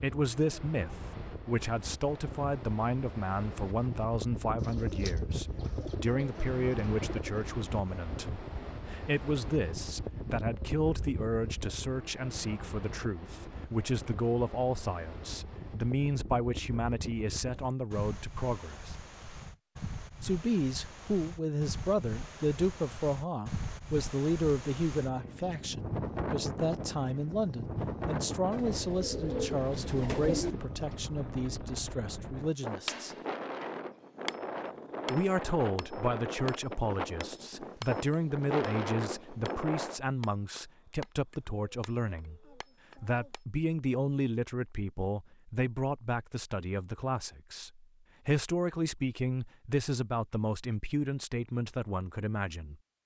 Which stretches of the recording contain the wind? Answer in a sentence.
You can hear the wind from 0.0 to 40.0 s.